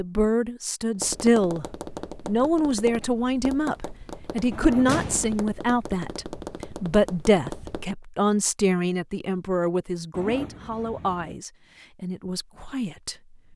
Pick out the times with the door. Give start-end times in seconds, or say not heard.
4.8-5.4.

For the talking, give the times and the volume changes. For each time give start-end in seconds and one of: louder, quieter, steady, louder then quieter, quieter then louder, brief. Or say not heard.
0.0-1.6 brief
2.2-13.5 quieter.